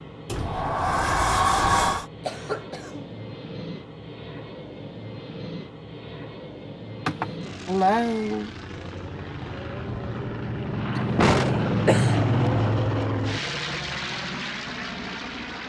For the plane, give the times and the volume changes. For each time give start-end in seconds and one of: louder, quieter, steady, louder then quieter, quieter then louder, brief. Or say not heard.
0.0-15.6 louder.